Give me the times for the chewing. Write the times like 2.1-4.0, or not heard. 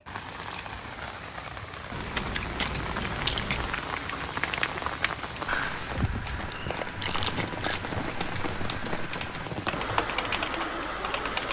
1.9-3.9, 6.3-7.8.